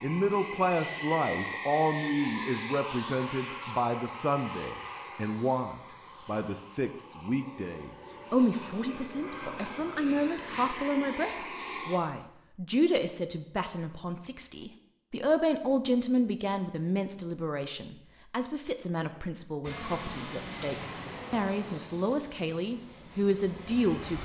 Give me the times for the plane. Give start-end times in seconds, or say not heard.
0.0-12.0, 19.6-24.2.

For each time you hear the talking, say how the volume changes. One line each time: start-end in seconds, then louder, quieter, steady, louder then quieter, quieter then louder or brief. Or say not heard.
0.0-24.2 steady.